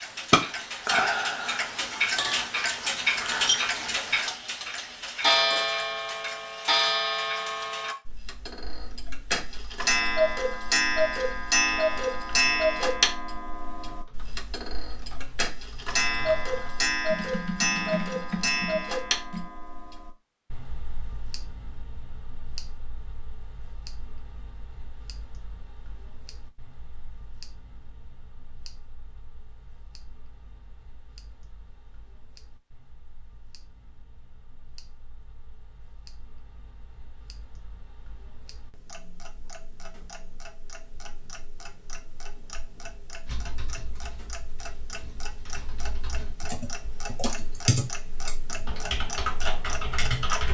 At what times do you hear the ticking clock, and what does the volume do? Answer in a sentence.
You can hear the ticking clock from 0.0 to 50.4 s, getting quieter then louder.